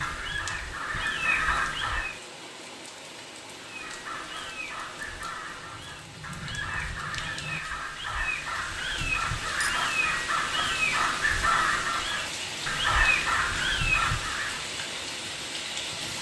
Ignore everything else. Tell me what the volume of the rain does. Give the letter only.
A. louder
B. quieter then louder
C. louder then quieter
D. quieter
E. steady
A.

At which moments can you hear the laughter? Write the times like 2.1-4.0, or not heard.
not heard.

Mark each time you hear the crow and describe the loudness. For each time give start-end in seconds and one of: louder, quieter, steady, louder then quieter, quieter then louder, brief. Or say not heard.
0.0-2.1 brief
3.5-14.7 louder.